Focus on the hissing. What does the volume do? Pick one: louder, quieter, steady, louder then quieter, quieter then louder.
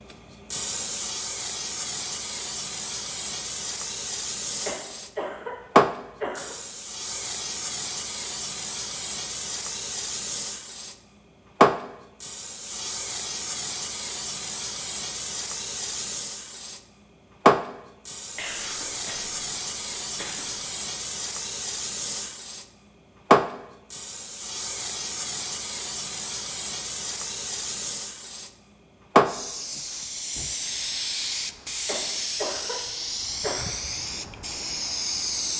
steady.